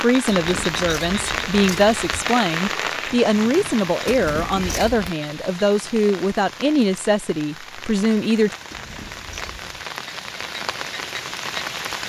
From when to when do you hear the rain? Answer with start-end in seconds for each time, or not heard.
0.0-12.0.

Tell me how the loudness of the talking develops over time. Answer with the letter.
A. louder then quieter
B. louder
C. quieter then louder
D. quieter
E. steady
E.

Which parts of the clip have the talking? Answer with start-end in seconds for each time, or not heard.
0.0-8.6.